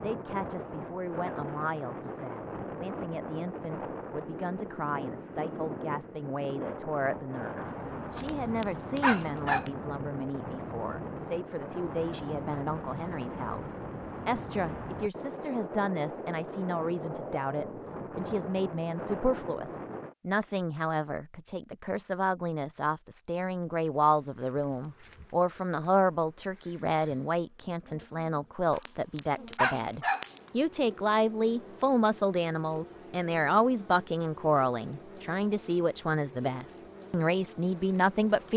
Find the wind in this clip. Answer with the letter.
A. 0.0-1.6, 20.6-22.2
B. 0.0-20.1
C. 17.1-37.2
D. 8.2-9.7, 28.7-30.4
B.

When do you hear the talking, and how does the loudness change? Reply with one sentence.
You can hear the talking from 0.0 to 38.5 s, getting louder.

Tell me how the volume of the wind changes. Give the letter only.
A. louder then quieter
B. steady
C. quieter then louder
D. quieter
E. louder
B.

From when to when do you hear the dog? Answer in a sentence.
You can hear the dog from 8.2 to 9.7 s and from 28.7 to 30.4 s.